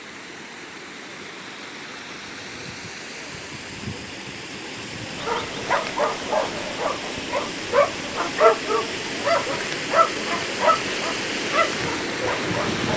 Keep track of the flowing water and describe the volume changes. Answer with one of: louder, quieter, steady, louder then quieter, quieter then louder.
louder.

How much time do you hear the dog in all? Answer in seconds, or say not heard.
8 s.